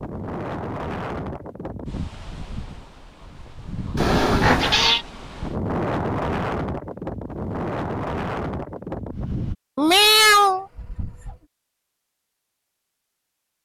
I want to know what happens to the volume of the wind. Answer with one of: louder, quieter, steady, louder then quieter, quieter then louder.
quieter then louder.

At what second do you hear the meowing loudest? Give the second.
10 s.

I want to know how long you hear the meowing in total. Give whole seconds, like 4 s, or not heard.
3 s.